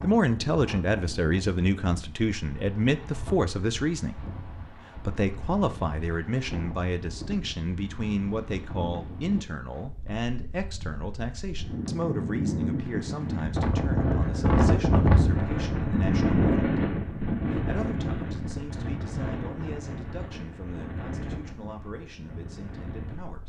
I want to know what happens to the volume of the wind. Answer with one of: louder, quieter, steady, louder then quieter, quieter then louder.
louder then quieter.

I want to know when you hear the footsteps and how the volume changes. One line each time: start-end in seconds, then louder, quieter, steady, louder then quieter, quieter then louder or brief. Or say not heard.
not heard.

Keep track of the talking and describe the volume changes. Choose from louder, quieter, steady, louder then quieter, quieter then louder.
quieter.